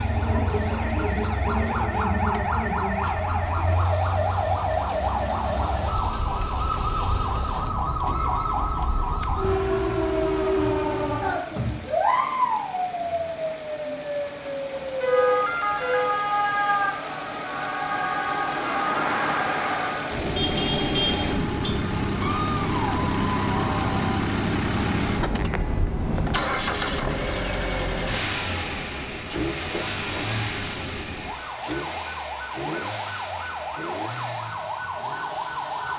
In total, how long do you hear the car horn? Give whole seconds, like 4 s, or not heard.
3 s.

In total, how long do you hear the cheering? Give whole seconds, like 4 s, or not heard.
2 s.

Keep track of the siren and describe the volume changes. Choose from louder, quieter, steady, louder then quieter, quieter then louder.
quieter.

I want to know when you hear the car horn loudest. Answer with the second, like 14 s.
15 s.